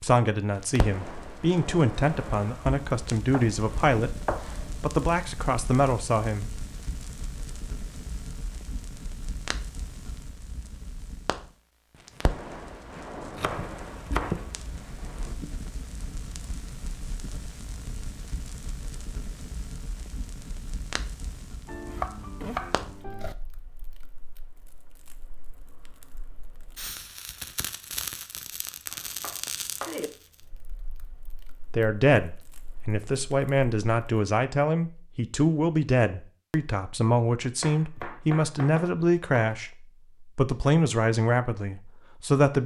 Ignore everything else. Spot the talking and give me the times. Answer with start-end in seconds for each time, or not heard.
0.0-6.5, 31.7-42.6.